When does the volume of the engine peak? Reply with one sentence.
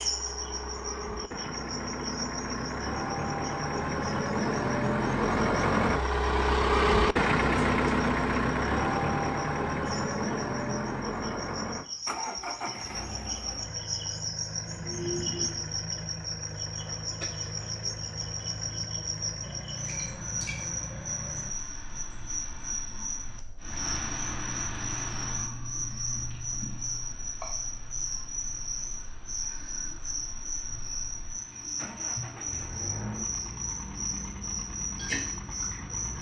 The volume of the engine peaks at 7 seconds.